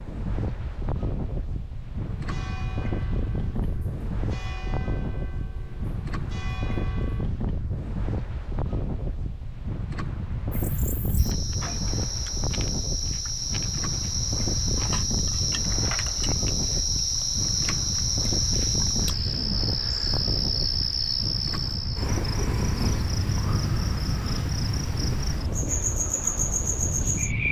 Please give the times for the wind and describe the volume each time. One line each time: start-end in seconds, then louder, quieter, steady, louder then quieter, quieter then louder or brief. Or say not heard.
0.0-27.4 steady.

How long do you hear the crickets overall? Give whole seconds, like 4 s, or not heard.
17 s.